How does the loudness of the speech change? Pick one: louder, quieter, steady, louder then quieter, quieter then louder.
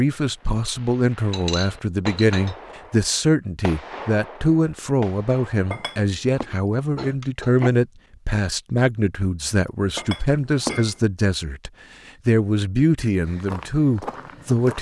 steady.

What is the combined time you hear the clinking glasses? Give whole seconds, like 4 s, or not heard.
3 s.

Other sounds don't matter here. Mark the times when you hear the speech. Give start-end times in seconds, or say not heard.
0.0-14.7.